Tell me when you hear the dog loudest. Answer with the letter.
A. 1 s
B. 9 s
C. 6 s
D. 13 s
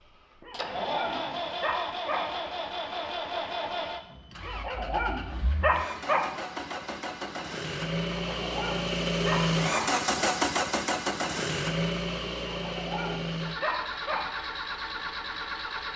C.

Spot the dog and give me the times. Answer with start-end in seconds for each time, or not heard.
0.4-2.2, 4.5-6.2, 8.2-9.8, 12.5-14.2.